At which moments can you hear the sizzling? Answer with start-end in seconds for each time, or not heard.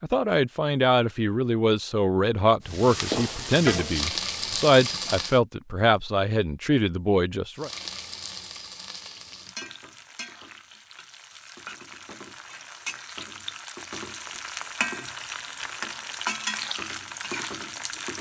2.6-5.4, 7.5-18.1.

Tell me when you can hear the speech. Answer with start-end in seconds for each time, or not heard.
0.0-7.7.